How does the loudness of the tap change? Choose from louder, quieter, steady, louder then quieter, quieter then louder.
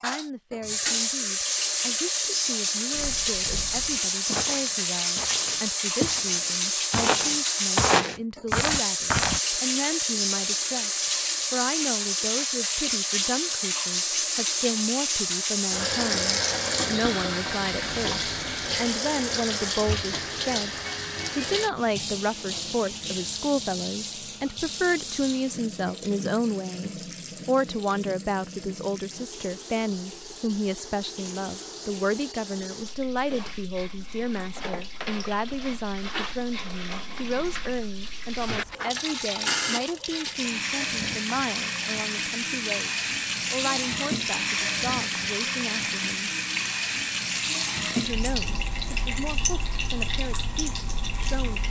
quieter then louder.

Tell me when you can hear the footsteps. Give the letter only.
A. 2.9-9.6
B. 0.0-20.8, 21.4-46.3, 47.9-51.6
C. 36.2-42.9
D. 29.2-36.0
A.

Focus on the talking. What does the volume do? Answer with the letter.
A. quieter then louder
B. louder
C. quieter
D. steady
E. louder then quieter
E.